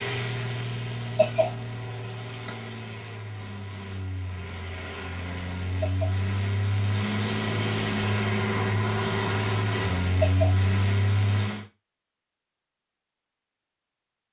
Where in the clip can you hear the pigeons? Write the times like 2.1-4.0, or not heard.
not heard.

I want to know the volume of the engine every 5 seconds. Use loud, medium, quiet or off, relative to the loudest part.
medium, loud, loud.